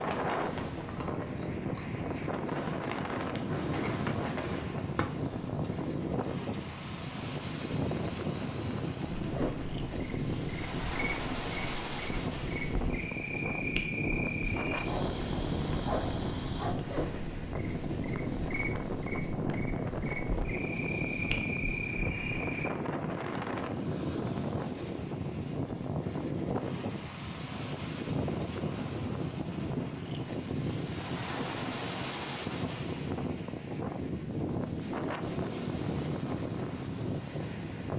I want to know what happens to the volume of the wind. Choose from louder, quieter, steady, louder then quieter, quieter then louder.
steady.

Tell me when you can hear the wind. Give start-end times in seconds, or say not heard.
0.0-37.9.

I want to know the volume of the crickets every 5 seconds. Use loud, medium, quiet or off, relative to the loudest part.
loud, loud, loud, loud, loud, off, off, off.